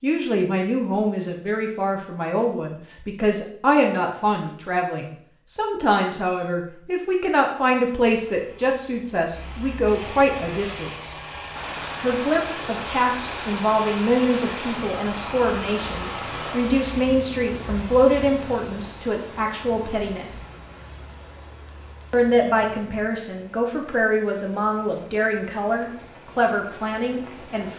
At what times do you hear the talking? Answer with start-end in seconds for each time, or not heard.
0.0-11.1, 12.0-20.4, 22.1-27.7.